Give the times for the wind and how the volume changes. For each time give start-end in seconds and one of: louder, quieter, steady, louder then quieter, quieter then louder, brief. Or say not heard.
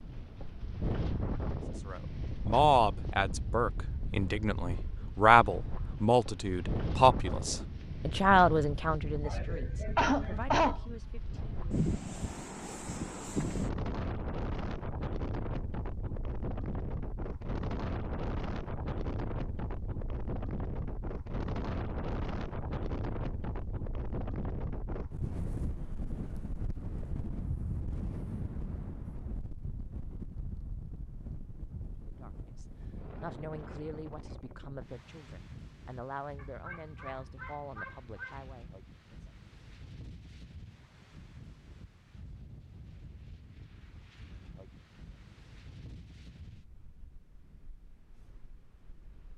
0.0-49.3 quieter.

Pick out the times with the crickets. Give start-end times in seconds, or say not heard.
not heard.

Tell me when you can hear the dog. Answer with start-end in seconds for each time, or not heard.
36.4-38.4.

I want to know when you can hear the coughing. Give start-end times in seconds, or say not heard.
9.2-11.4.